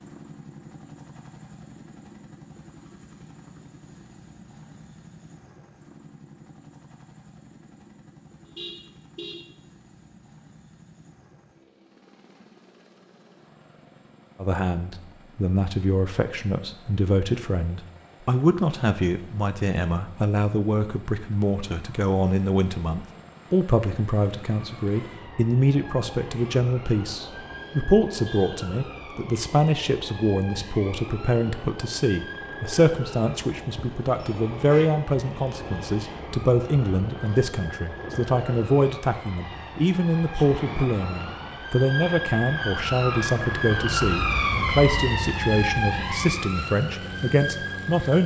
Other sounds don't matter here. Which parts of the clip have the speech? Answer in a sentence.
The speech can be heard from 14.4 to 48.2 s.